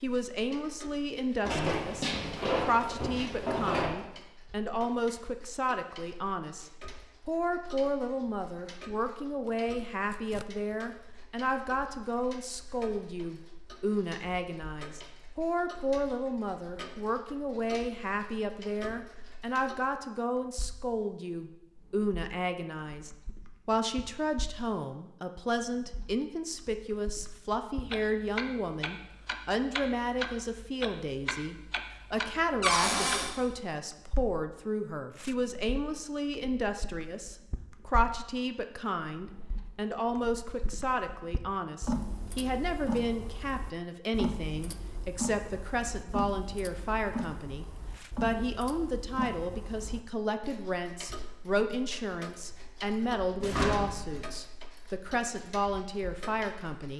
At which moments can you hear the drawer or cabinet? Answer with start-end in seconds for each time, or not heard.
1.4-3.9, 32.6-33.3, 53.4-54.2.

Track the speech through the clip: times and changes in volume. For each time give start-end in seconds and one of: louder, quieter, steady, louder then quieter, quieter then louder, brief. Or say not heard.
0.0-56.9 steady.